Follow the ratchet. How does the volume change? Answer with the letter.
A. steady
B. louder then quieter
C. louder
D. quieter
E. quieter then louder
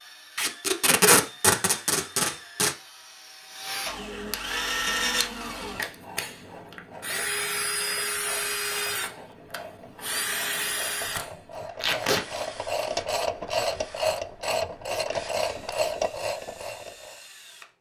C.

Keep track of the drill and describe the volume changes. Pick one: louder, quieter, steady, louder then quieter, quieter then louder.
louder then quieter.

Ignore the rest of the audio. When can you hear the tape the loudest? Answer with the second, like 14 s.
1 s.